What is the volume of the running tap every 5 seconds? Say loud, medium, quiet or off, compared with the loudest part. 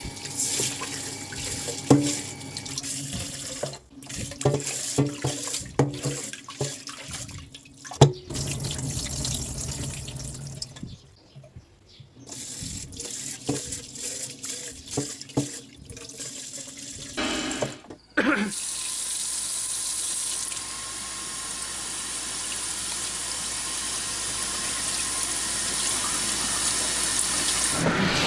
loud, loud, medium, medium, medium, loud.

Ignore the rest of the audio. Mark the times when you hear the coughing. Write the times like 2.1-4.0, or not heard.
17.1-18.6.